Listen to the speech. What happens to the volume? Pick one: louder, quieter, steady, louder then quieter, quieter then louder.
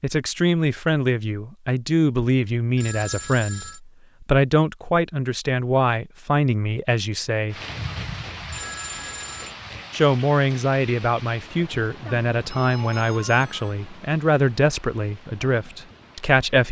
steady.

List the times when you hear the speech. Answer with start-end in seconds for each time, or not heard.
0.0-7.5, 9.9-16.6.